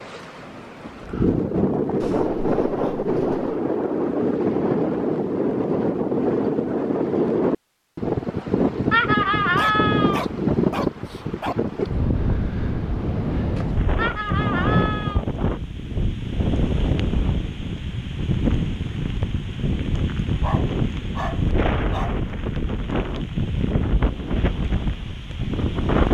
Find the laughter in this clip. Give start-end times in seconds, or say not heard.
8.9-10.2, 13.9-15.2.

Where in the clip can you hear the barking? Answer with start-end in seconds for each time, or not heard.
2.0-3.5, 9.6-11.6, 20.4-22.2.